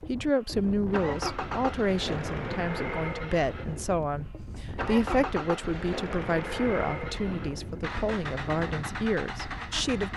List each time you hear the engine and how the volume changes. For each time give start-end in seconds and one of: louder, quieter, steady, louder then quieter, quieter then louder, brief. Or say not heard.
0.0-10.1 steady.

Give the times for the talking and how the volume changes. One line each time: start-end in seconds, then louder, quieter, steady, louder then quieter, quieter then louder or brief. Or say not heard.
0.0-10.1 steady.